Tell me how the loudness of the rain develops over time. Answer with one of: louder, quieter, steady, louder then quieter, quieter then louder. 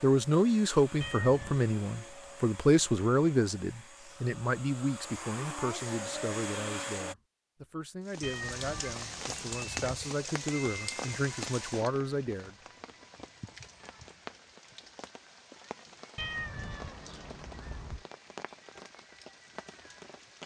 quieter.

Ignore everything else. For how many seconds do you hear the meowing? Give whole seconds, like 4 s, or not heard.
4 s.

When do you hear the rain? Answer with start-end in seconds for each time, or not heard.
8.1-20.4.